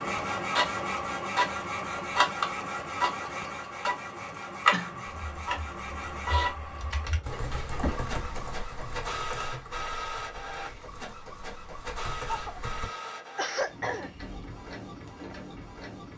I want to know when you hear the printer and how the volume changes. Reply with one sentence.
The printer can be heard from 0.0 to 16.1 s, getting quieter.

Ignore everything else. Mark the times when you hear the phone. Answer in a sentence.
The phone can't be heard in this clip.